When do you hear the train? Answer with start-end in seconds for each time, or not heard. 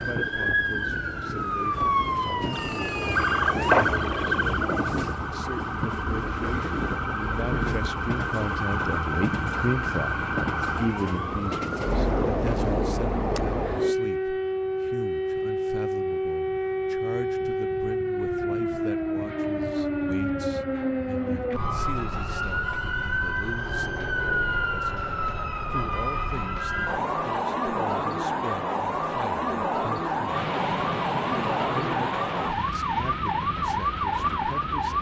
0.0-13.9, 30.3-34.9.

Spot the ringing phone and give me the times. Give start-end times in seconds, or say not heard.
2.5-4.0.